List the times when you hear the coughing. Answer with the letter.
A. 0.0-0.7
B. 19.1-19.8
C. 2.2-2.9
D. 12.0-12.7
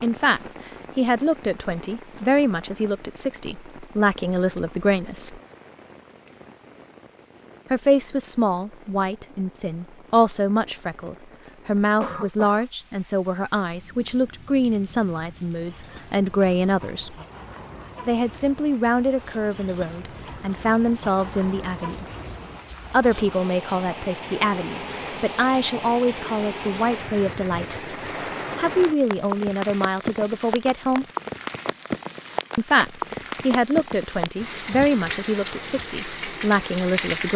D.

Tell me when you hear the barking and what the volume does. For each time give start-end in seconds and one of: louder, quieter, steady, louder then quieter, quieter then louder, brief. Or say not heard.
not heard.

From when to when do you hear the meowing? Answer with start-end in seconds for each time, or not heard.
not heard.